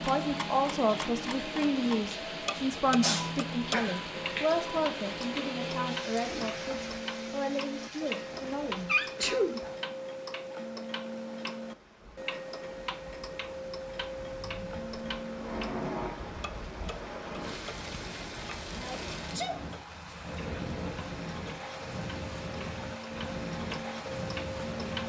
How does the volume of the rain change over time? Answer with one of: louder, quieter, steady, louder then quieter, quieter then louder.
quieter then louder.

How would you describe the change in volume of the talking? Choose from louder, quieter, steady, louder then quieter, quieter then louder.
quieter.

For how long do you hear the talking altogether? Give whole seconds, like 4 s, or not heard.
10 s.